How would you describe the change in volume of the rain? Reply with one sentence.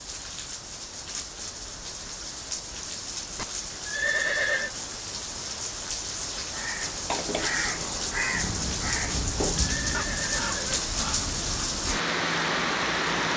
The volume of the rain goes up.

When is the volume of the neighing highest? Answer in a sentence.
The loudest moment of the neighing is at 4 seconds.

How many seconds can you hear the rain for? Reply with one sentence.
You can hear the rain for 13 seconds altogether.